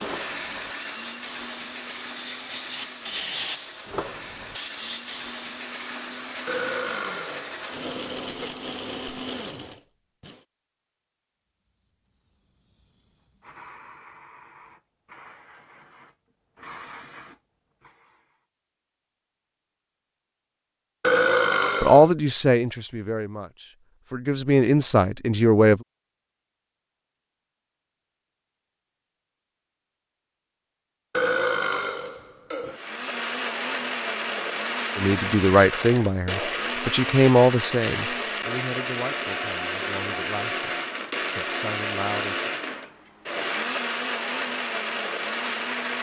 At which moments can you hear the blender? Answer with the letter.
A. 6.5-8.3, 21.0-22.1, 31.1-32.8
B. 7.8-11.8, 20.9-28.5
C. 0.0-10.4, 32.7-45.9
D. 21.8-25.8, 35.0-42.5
C.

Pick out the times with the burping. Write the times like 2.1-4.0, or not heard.
6.5-8.3, 21.0-22.1, 31.1-32.8.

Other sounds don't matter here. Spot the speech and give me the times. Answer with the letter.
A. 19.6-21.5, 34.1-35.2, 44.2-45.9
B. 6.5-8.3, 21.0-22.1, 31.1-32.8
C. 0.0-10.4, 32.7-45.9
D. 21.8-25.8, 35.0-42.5
D.